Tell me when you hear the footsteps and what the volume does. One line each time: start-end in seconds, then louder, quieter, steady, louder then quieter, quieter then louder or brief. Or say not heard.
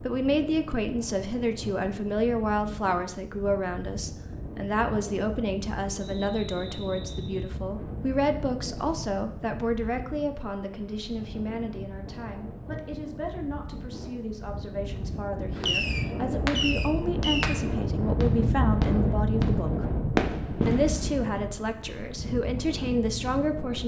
not heard.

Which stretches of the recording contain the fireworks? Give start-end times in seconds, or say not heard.
15.6-21.5.